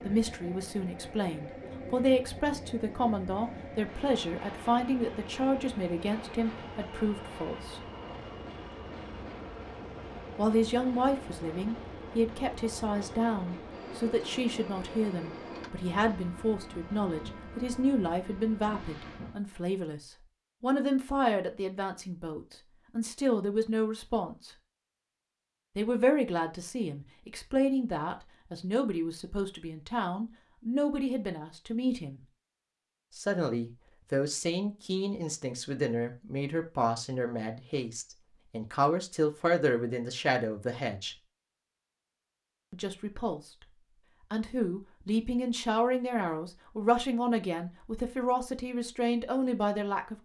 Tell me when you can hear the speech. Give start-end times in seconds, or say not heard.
0.1-7.8, 10.3-24.5, 25.8-32.2, 33.1-41.1, 42.7-43.5, 44.3-50.1.